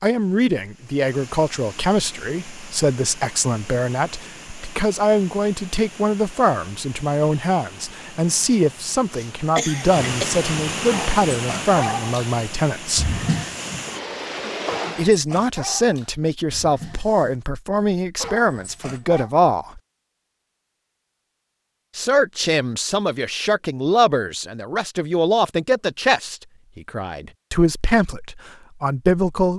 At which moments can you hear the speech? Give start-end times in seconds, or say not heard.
0.0-13.1, 14.9-19.8, 21.9-29.5.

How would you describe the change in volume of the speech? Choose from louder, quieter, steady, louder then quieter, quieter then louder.
steady.